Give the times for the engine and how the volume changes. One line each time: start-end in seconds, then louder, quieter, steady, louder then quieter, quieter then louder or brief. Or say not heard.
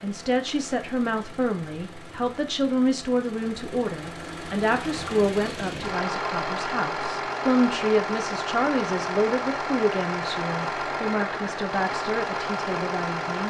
0.0-13.4 louder.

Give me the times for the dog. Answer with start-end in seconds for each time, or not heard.
not heard.